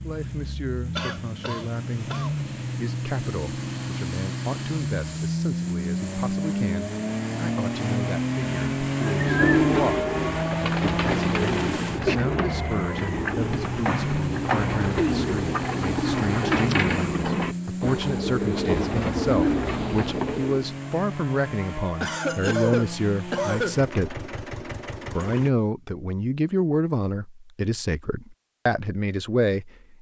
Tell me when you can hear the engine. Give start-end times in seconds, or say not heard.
0.0-25.5.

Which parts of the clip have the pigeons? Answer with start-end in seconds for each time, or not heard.
9.0-20.6.